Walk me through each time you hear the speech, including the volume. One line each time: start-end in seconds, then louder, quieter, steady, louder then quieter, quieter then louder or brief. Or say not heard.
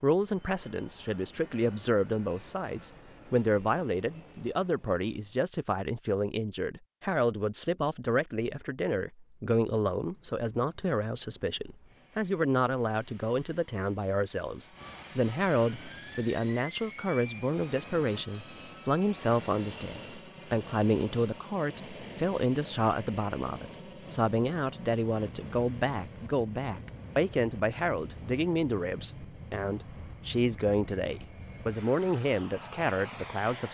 0.0-33.6 steady.